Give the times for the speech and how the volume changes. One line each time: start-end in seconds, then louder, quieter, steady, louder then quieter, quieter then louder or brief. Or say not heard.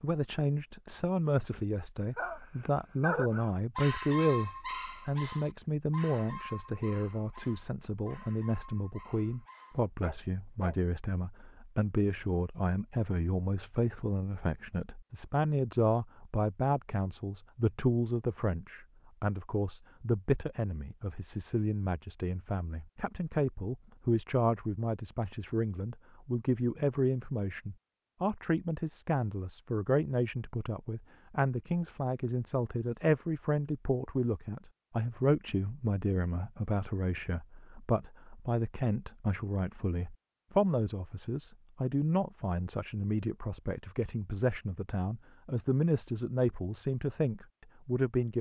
0.0-48.3 steady.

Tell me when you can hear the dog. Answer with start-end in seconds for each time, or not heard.
2.1-10.8.